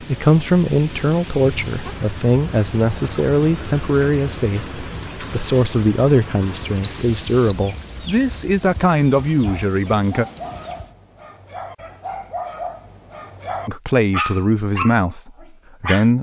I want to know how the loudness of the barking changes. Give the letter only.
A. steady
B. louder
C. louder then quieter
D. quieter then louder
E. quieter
B.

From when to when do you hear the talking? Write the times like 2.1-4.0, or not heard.
0.0-10.2, 13.7-16.1.